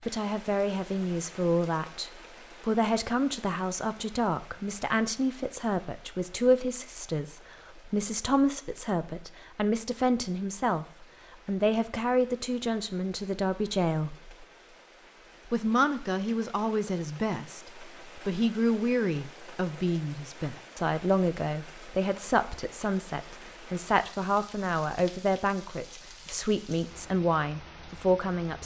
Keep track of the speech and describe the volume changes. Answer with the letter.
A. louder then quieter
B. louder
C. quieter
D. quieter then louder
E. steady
E.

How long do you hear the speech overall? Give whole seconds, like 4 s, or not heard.
27 s.